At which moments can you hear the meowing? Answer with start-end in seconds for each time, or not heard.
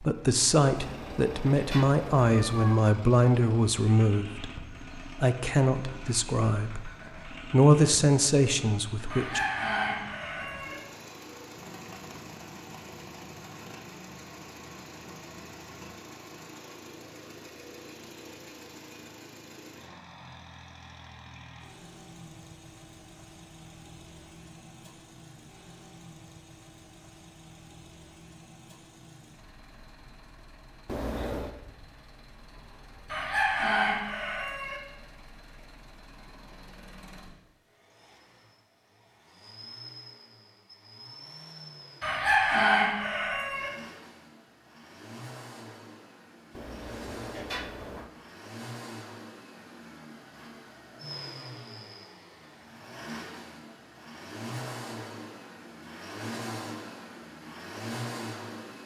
0.8-2.8, 30.9-31.6, 46.5-48.1.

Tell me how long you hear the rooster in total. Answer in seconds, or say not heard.
5 s.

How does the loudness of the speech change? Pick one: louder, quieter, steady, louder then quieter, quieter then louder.
steady.